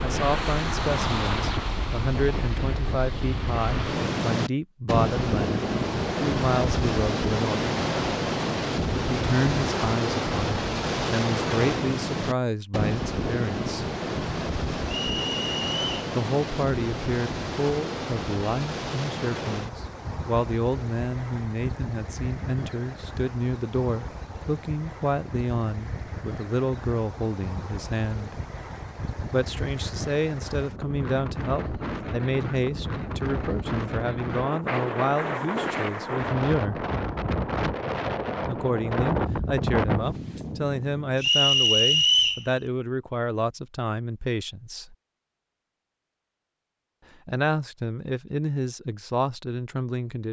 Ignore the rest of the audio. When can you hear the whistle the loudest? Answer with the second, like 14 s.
42 s.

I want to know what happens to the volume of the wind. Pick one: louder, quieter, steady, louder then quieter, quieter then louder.
quieter then louder.